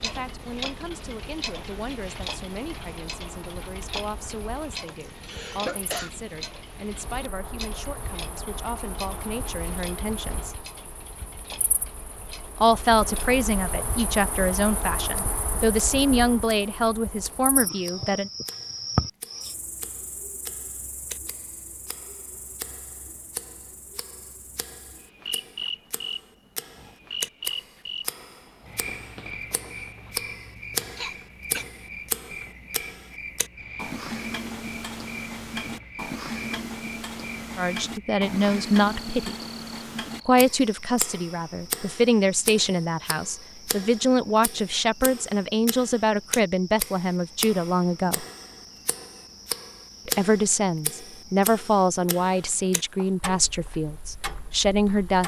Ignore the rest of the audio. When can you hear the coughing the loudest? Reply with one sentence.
The loudest moment of the coughing is at 6 seconds.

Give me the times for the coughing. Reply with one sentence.
The coughing can be heard from 4.8 to 6.1 s and from 30.9 to 31.6 s.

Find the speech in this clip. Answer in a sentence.
You can hear the speech from 0.0 to 10.7 s, from 12.6 to 18.3 s, from 37.5 to 39.4 s, from 40.2 to 48.2 s and from 50.0 to 55.2 s.